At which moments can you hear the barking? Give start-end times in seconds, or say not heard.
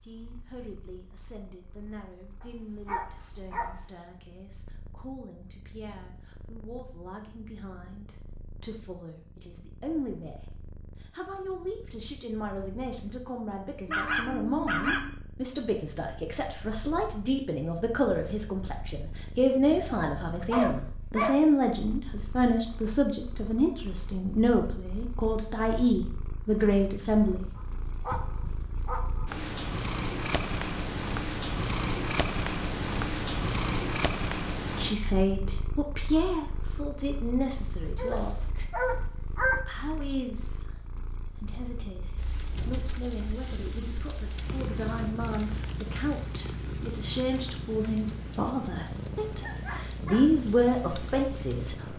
2.4-4.0, 13.8-15.1, 19.9-21.4, 27.6-29.3, 38.0-39.6, 49.4-50.2.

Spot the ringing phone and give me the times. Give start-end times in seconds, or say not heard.
not heard.